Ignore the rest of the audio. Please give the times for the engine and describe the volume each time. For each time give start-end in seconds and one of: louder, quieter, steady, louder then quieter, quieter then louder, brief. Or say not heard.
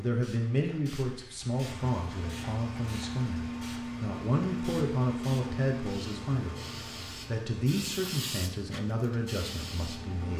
1.5-10.3 quieter.